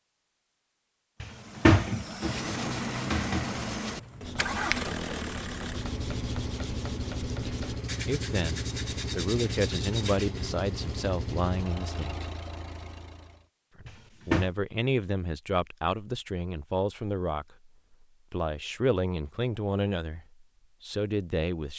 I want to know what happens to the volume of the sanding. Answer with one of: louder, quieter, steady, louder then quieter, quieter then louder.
steady.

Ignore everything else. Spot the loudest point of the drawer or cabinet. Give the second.
2 s.